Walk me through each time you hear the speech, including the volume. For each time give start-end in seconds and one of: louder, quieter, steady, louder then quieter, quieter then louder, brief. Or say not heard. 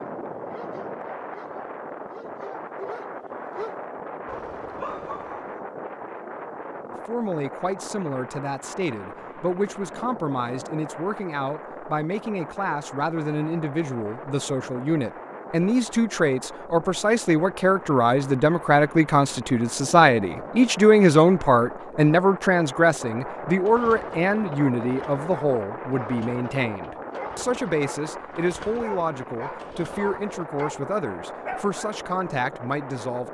7.0-33.2 louder then quieter.